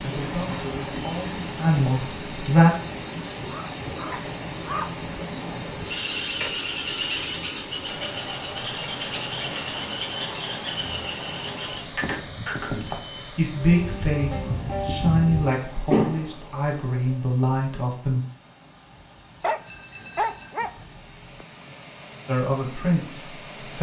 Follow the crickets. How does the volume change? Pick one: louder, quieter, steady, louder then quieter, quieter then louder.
steady.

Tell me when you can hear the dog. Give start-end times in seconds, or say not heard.
3.5-5.0, 19.4-21.4.